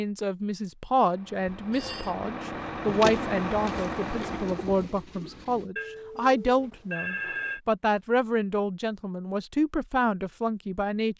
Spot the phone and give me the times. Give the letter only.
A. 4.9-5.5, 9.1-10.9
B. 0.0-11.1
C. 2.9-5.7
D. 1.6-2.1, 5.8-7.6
D.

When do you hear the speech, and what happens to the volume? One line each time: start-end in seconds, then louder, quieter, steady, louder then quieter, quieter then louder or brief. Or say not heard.
0.0-11.1 steady.